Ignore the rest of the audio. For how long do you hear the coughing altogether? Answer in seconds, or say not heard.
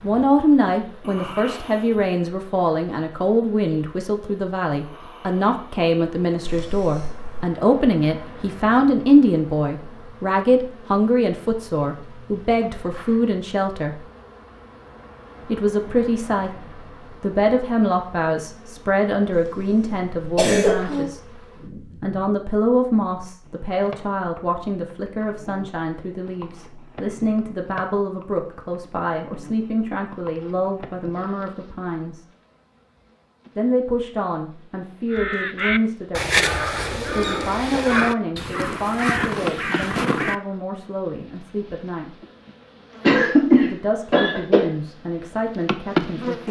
4 s.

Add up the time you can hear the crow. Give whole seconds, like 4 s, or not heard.
5 s.